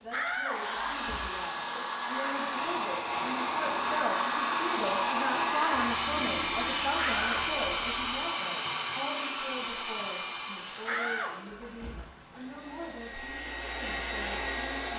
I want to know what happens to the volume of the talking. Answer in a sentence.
The volume of the talking goes up, then down.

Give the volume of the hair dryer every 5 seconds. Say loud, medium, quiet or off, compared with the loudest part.
loud, loud, medium.